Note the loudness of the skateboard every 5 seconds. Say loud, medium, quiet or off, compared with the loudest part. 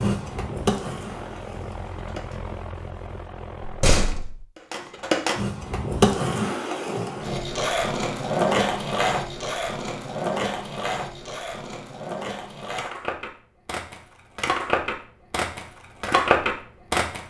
medium, loud, medium, loud.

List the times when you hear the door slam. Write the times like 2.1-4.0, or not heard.
3.6-4.5.